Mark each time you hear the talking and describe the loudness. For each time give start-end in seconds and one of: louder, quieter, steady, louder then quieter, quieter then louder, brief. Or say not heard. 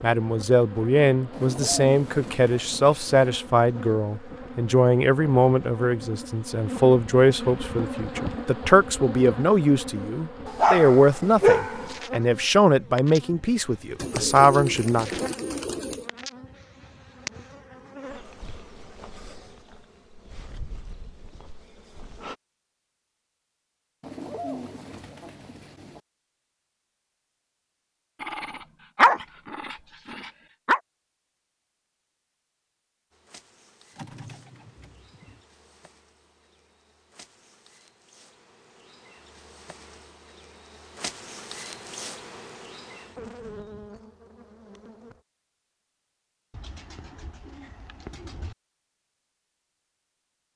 0.0-15.1 steady.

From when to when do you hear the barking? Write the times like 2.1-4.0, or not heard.
10.4-11.9, 28.2-30.8.